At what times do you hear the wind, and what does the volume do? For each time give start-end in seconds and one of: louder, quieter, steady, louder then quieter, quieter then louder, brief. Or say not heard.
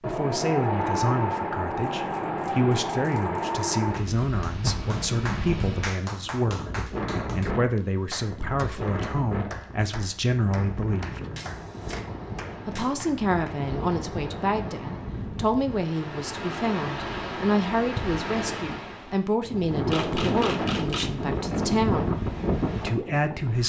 0.0-23.6 quieter then louder.